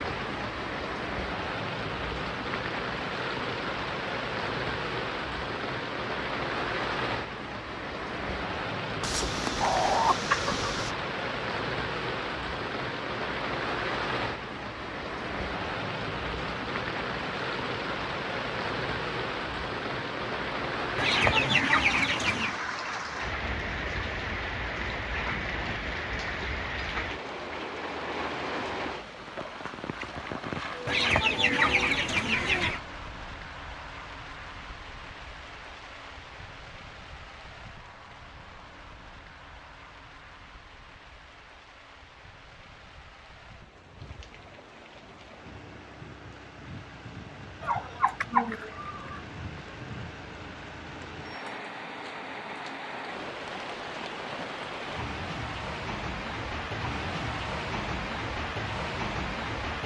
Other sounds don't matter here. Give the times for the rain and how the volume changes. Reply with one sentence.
The rain can be heard from 0.0 to 59.8 s, getting quieter then louder.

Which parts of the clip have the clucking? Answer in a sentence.
The clucking can be heard from 9.0 to 10.9 s, from 20.9 to 22.6 s, from 30.9 to 32.8 s and from 47.6 to 49.2 s.